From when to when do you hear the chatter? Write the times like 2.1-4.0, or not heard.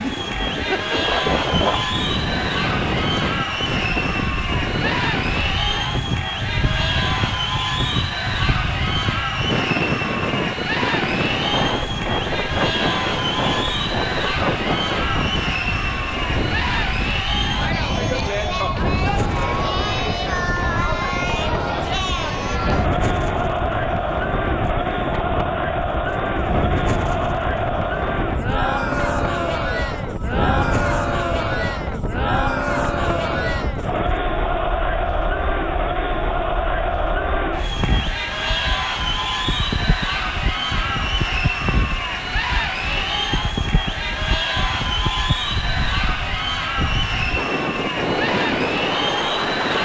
0.0-49.7.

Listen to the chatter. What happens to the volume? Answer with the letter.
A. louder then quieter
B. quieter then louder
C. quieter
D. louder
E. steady
E.